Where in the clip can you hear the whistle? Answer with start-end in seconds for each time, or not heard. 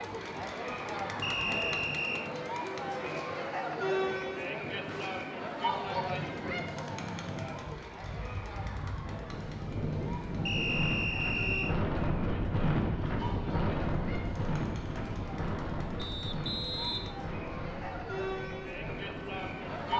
1.2-2.3, 10.4-11.8, 15.9-17.1.